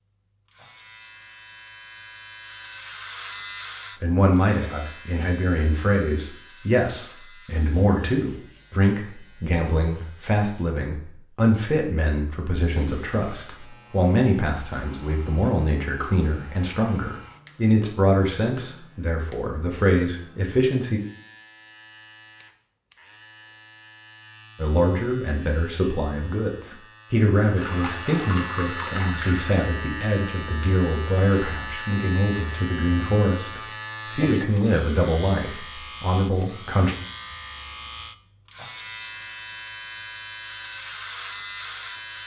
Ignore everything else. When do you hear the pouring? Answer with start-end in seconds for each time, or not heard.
27.6-29.4.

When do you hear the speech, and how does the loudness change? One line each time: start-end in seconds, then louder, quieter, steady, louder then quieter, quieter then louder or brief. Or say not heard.
4.0-21.0 steady
24.6-37.0 steady.